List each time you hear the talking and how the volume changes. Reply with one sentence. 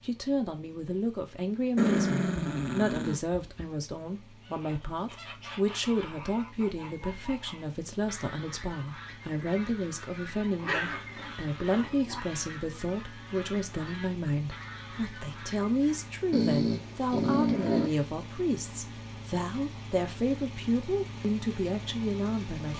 The talking can be heard from 0.0 to 22.7 s, at a steady volume.